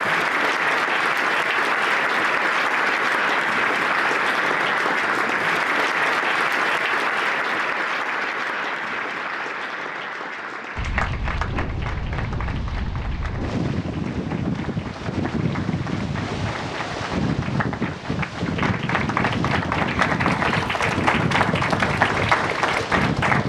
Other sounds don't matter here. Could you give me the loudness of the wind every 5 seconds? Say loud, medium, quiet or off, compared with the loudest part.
off, off, loud, loud, loud.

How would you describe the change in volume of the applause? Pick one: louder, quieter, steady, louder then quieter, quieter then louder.
quieter then louder.